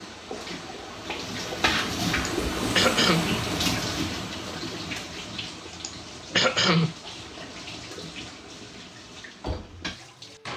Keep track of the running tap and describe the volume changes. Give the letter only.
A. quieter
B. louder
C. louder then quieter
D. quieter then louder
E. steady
A.